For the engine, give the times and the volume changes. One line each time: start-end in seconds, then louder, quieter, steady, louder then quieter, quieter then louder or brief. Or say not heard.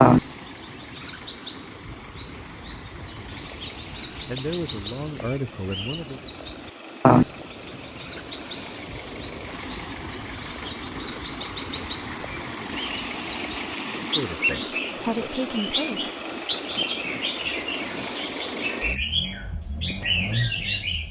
0.0-21.0 louder.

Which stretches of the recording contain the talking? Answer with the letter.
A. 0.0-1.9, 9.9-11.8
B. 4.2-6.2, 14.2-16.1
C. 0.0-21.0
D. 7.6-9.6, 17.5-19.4
B.